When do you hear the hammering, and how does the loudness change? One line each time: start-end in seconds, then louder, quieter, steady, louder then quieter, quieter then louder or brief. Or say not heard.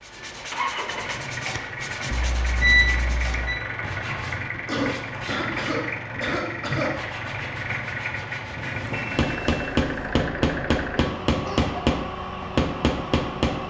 8.9-13.6 steady.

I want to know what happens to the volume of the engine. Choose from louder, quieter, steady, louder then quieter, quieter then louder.
steady.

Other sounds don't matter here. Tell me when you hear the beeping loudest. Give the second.
3 s.